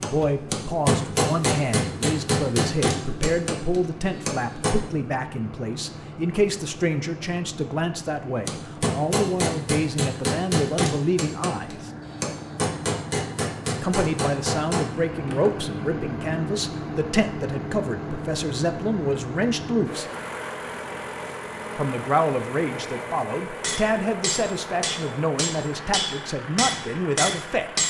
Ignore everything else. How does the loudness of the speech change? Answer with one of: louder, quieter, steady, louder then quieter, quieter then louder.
steady.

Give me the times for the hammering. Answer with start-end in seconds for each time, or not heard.
0.0-4.8, 8.4-15.6, 23.6-27.8.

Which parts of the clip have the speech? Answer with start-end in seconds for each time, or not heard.
0.0-11.9, 13.8-20.1, 21.8-27.8.